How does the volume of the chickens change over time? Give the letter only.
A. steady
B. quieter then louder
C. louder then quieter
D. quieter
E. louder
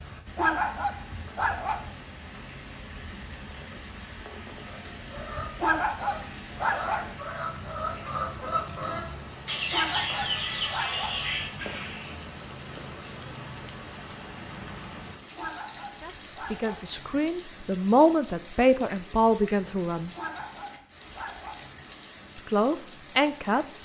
E.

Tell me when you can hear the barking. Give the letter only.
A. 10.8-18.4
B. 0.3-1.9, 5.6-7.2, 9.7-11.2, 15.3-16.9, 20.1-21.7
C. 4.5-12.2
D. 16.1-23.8
B.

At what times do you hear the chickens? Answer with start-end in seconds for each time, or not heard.
4.5-12.2.